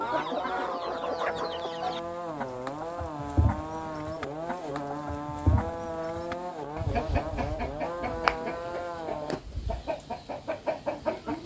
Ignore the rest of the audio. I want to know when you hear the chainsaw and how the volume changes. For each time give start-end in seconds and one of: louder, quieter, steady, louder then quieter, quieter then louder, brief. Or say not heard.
0.0-9.4 steady.